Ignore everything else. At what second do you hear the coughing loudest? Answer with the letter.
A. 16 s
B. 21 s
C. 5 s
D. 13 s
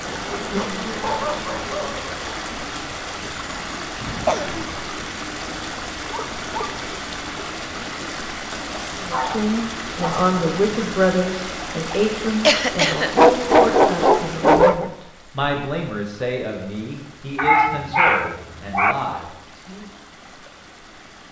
D.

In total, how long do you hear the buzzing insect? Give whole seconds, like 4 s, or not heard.
2 s.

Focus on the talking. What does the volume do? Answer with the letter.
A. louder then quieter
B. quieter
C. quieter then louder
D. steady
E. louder
B.